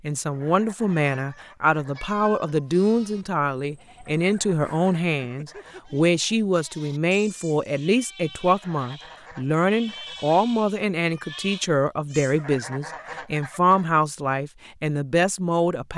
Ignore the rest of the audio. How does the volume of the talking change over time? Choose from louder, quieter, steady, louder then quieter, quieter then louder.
steady.